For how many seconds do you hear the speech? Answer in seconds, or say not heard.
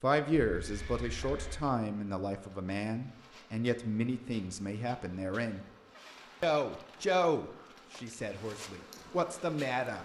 9 s.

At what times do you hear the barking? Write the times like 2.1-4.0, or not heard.
not heard.